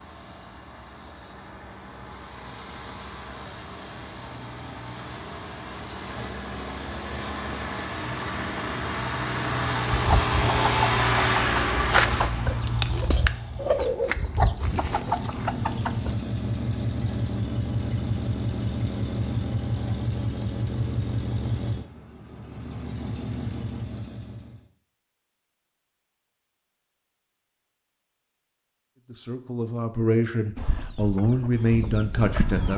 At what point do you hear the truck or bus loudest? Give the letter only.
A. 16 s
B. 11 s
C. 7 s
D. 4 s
B.